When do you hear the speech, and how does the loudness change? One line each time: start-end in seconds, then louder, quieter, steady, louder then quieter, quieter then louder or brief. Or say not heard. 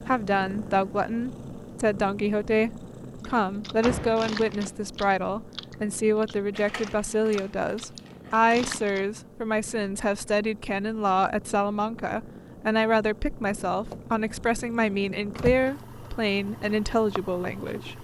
0.0-17.9 steady.